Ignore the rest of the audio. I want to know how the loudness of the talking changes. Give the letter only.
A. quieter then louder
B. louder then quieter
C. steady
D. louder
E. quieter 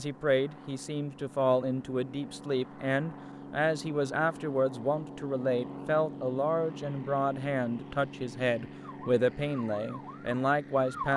C.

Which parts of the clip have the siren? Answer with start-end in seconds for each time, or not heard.
8.8-11.1.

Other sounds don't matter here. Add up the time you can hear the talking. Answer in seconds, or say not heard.
11 s.